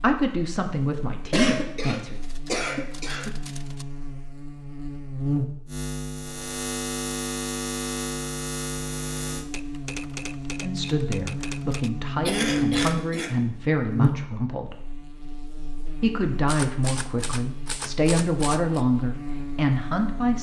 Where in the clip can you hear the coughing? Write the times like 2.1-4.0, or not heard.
1.3-3.3, 12.2-13.3.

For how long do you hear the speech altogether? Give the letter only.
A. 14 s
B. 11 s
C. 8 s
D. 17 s
B.